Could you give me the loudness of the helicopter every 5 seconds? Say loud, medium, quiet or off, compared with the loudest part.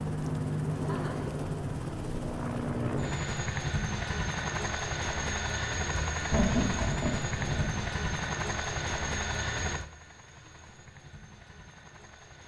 loud, loud, quiet.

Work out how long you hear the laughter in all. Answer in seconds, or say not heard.
2 s.